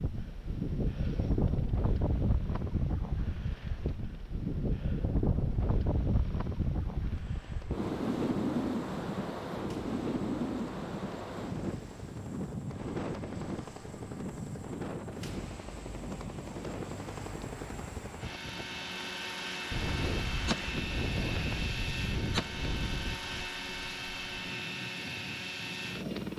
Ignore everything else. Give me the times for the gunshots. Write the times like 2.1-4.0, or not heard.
19.7-23.2.